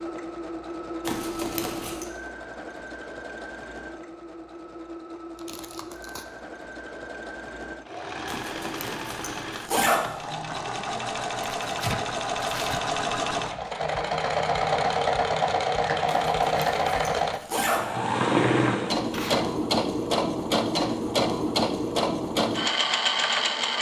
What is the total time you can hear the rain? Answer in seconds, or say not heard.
not heard.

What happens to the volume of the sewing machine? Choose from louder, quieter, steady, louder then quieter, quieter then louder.
louder.